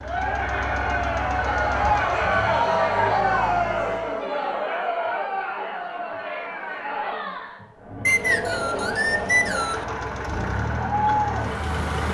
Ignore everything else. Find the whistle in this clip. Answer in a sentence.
You can hear the whistle from 8.1 to 9.8 s.